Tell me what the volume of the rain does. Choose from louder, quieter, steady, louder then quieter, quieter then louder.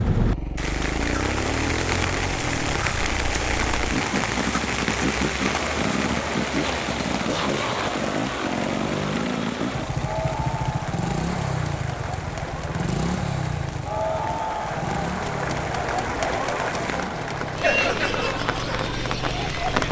quieter then louder.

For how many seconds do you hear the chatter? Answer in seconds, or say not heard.
14 s.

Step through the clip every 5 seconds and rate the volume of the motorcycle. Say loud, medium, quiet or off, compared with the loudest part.
loud, loud, loud, medium.